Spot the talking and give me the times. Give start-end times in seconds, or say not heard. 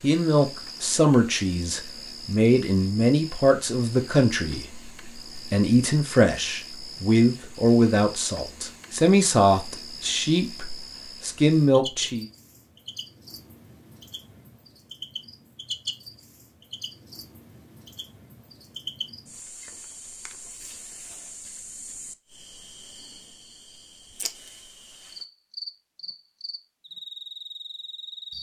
0.0-12.2.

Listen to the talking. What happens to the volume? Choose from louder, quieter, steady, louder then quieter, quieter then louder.
steady.